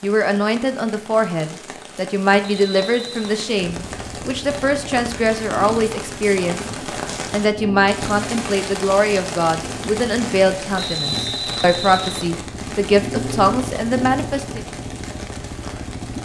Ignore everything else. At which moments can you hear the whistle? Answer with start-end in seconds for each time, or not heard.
2.5-3.3, 10.8-12.3.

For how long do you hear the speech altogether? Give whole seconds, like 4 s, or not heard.
14 s.